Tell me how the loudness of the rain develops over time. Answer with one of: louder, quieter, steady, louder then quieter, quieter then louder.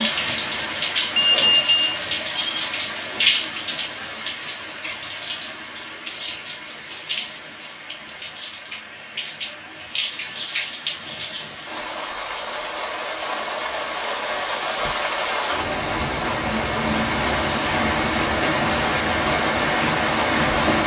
quieter then louder.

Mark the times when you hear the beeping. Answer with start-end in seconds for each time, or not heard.
1.1-2.6.